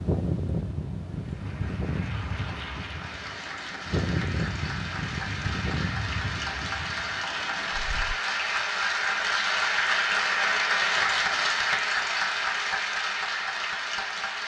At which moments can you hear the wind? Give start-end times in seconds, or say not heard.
0.0-8.2.